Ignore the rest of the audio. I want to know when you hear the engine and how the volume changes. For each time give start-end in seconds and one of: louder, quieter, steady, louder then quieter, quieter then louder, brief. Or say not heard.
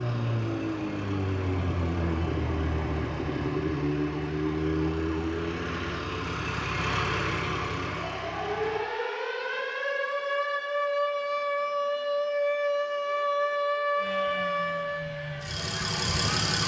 0.0-8.8 louder
13.9-16.6 brief.